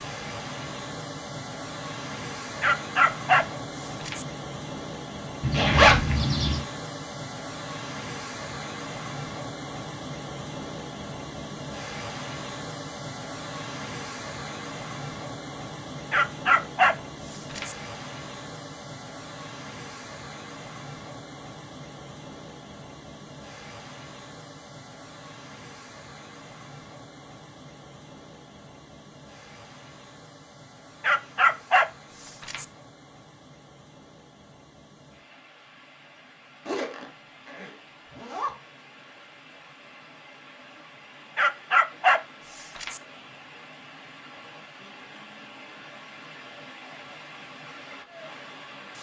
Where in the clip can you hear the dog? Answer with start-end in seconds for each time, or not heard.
2.6-4.2, 16.1-17.8, 31.0-32.6, 41.4-43.0.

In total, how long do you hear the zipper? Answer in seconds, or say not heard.
3 s.